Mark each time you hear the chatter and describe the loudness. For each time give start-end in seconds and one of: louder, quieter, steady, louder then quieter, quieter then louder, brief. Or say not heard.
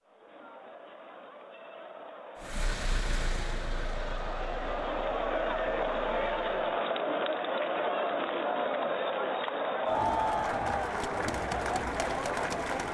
0.0-12.8 louder.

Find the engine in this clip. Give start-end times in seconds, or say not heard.
2.4-6.8.